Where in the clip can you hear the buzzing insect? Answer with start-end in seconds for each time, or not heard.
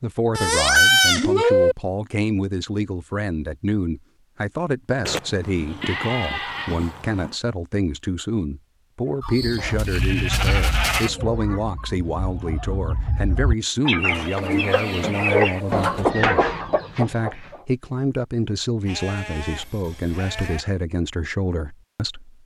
not heard.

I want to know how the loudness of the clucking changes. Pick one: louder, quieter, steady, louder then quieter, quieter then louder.
quieter then louder.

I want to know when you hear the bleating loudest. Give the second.
1 s.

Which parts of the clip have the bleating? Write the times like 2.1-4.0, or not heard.
0.3-1.8, 5.0-7.3, 9.2-11.1, 14.1-16.1, 18.9-20.6.